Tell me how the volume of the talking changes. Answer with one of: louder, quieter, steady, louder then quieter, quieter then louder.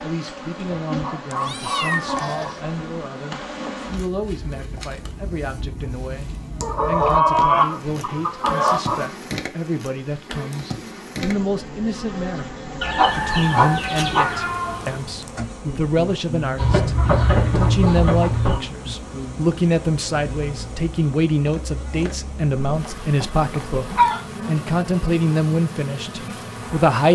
louder.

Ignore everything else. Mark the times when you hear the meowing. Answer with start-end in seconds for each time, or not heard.
1.3-2.6, 14.2-15.4.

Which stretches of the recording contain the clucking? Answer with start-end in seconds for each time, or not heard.
1.0-2.5, 6.6-9.1, 12.8-14.4, 16.6-18.6, 22.6-24.2.